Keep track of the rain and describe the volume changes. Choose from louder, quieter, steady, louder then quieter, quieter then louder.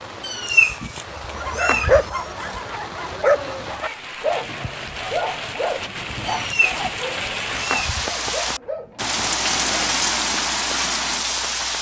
louder.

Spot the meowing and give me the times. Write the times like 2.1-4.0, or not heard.
0.2-2.6, 6.2-8.2.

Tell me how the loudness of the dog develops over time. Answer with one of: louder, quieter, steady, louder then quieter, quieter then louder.
quieter.